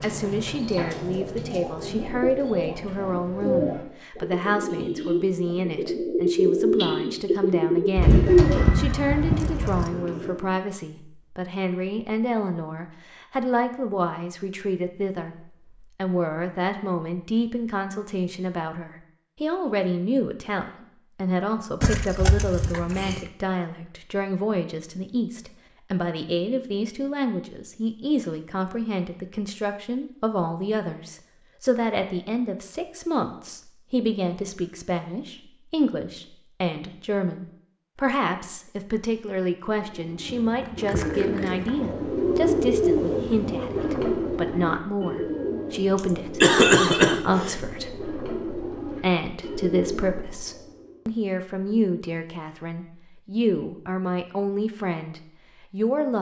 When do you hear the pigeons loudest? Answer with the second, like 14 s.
8 s.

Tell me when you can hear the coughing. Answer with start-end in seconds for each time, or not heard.
46.0-47.5.